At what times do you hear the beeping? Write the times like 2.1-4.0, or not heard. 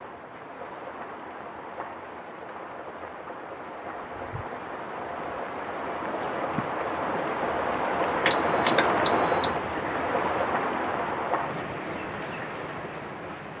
8.2-9.6.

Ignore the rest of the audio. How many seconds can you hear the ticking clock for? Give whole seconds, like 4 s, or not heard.
not heard.